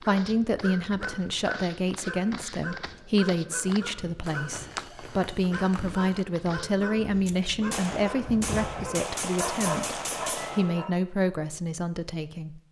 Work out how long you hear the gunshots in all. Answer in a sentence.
You can hear the gunshots for 4 seconds altogether.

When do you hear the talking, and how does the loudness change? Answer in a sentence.
You can hear the talking from 0.0 to 12.6 s, at a steady volume.